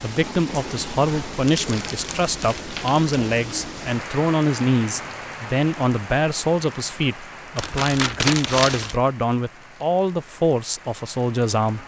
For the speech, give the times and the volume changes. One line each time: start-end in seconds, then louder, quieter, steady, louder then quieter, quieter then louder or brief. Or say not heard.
0.0-11.8 steady.